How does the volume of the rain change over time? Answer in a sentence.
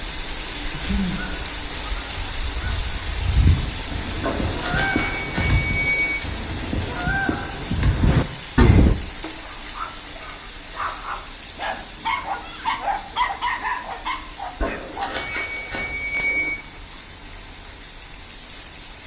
The volume of the rain goes down.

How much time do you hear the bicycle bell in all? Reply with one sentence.
The bicycle bell can be heard for 4 seconds in total.